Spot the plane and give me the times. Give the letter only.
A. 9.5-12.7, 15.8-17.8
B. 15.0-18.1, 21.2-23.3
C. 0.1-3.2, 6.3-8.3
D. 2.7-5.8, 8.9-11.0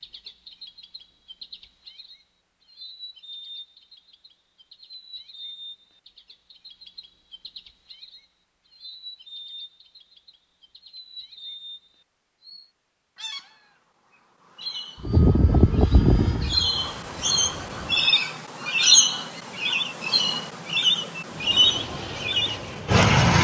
B.